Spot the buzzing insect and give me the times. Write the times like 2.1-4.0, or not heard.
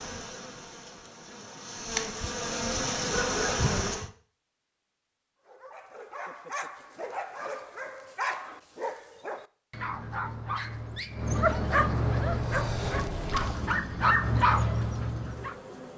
0.0-4.1, 12.2-15.9.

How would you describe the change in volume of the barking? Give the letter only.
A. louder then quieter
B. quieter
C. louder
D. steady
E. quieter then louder
C.